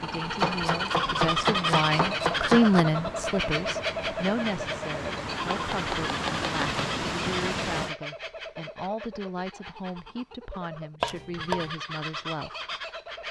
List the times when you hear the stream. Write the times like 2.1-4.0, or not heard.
0.0-8.0.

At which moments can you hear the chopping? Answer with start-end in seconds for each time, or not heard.
0.3-2.9, 5.5-6.8, 11.0-11.7.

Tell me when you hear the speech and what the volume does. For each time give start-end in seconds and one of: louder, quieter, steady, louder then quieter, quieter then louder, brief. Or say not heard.
0.0-12.6 quieter.